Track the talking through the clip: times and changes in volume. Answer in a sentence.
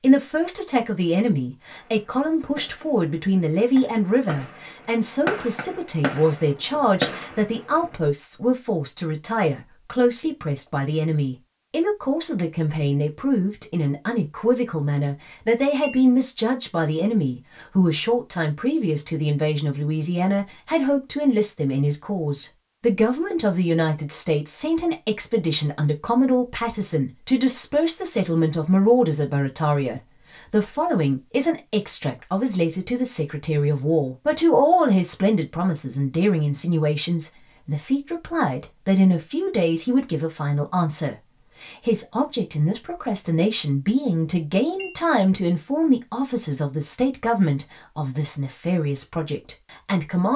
You can hear the talking from 0.0 to 50.3 s, at a steady volume.